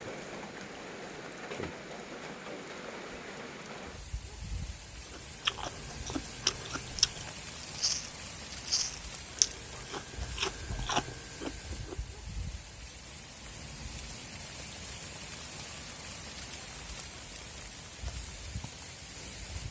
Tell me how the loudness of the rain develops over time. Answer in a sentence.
The volume of the rain stays about the same.